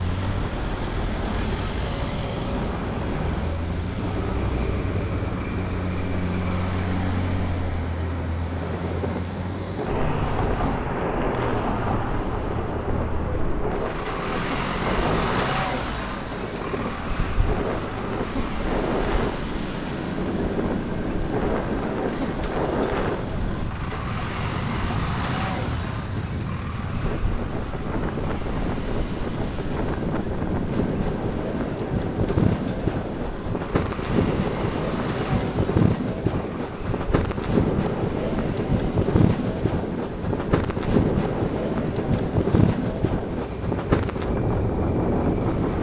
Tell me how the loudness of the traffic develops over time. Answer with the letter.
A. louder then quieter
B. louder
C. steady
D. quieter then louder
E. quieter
E.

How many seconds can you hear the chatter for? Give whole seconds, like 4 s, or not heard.
not heard.